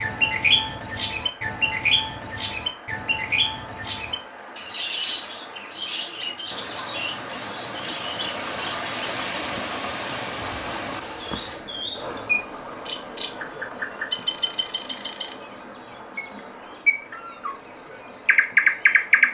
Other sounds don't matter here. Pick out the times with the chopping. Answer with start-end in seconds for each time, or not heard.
not heard.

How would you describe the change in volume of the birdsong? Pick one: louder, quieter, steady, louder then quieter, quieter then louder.
quieter then louder.